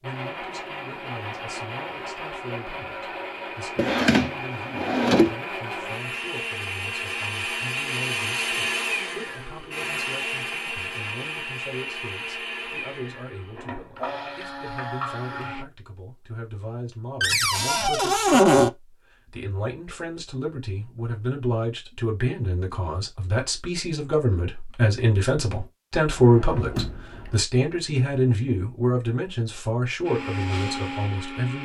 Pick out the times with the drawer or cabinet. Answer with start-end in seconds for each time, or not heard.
3.8-5.3, 17.2-18.7, 26.1-27.4.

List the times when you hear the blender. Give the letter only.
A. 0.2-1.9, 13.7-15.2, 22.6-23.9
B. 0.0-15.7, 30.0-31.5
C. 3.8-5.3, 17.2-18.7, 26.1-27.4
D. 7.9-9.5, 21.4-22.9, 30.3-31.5
B.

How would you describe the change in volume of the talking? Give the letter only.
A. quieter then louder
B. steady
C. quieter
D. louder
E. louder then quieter
D.